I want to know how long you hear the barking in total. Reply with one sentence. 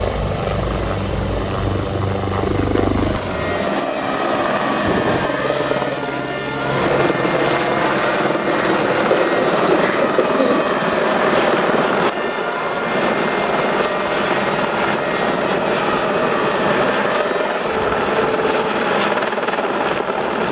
The barking can't be heard in this clip.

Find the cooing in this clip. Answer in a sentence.
You can hear the cooing from 8.4 to 10.8 s.